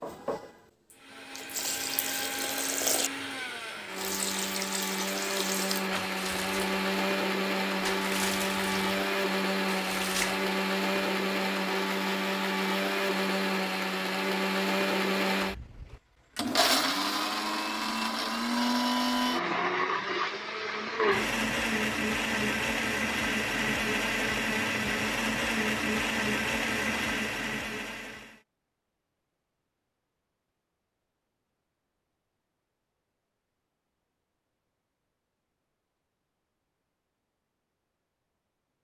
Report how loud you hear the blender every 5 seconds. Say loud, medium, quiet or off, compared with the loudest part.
medium, loud, loud, loud, loud, loud, off, off.